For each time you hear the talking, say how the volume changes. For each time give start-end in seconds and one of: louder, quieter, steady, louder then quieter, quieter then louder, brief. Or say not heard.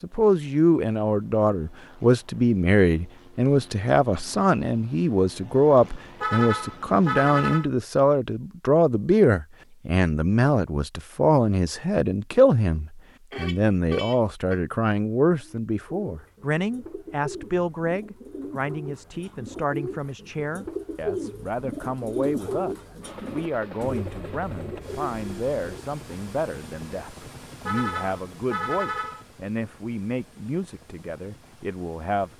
0.0-32.3 quieter.